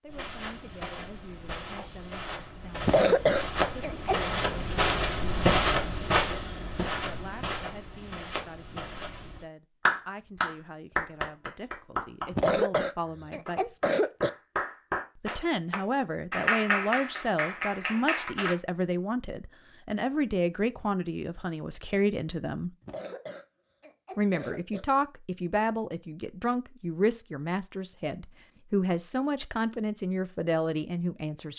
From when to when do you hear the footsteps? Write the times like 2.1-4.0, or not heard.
0.1-9.4.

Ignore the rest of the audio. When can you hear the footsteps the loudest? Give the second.
6 s.